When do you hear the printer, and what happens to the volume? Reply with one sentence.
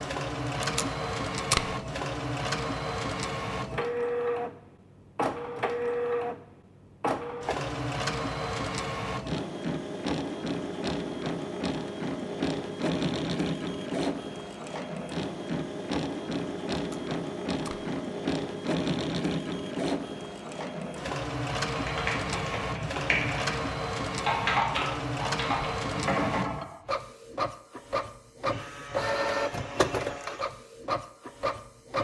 You can hear the printer from 0.0 to 31.9 s, at a steady volume.